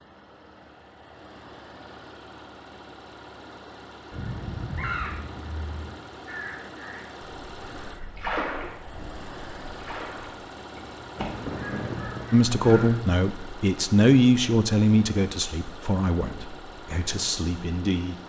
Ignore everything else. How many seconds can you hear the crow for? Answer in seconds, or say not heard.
9 s.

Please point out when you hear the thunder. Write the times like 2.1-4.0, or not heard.
11.2-12.3.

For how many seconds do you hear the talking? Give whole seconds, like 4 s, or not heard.
6 s.